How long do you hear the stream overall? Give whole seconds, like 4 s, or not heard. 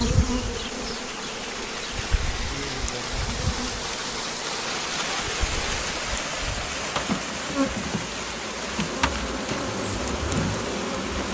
11 s.